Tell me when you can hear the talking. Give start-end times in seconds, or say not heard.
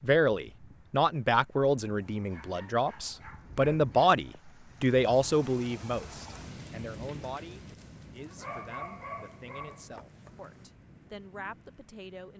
0.0-12.3.